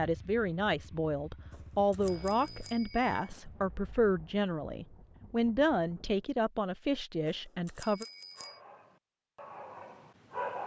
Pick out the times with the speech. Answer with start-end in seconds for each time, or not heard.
0.0-8.1.